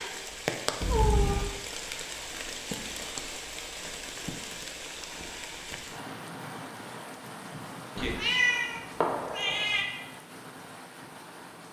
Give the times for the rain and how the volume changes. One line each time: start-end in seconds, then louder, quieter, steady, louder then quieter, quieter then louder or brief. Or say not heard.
0.0-11.6 quieter.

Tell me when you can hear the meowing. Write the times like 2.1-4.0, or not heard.
0.8-1.4, 8.0-9.8.